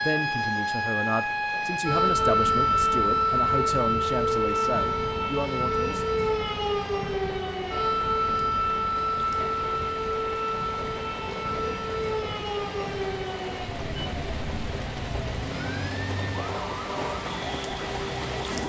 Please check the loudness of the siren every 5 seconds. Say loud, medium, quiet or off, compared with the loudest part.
loud, loud, medium, medium.